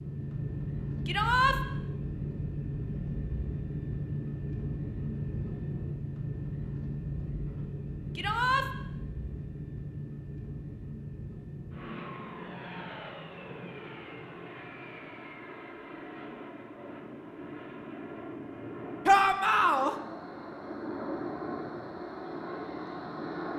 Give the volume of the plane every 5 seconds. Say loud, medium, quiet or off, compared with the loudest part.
loud, loud, medium, medium, loud.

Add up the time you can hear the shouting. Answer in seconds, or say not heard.
2 s.